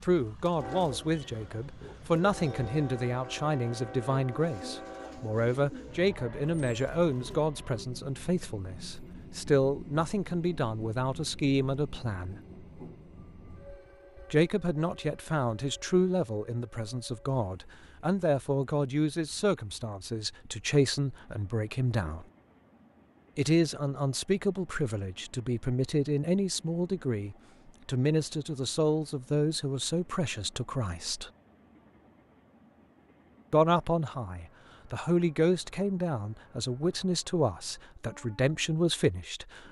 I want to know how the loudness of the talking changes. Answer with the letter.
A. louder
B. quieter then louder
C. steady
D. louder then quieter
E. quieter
C.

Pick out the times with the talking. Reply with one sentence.
You can hear the talking from 0.0 to 12.3 s, from 14.3 to 22.2 s, from 23.4 to 31.3 s and from 33.5 to 39.6 s.